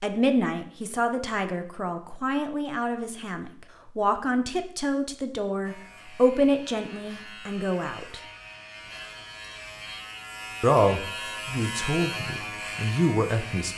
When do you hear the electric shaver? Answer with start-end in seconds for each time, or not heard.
5.6-13.7.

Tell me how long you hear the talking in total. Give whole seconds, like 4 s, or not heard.
11 s.